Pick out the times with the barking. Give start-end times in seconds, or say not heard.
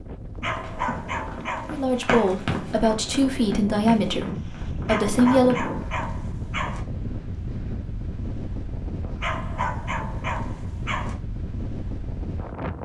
0.4-2.4, 4.8-6.8, 9.2-11.2.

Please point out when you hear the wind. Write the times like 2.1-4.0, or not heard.
0.0-12.8.